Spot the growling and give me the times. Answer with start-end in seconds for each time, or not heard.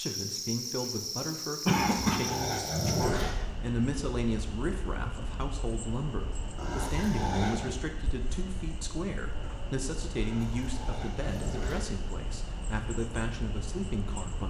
1.8-3.4, 6.5-7.8, 10.2-11.8.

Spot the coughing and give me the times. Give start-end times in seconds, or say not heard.
1.6-2.3.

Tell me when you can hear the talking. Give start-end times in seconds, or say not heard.
0.0-14.4.